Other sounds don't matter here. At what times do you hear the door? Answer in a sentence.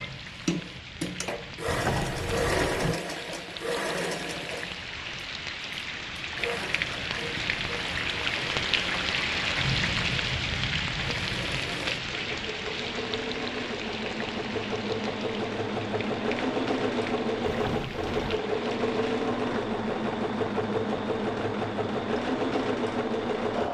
The door can be heard from 1.6 to 3.0 s and from 17.4 to 18.4 s.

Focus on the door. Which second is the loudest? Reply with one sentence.
The loudest moment of the door is at 2 seconds.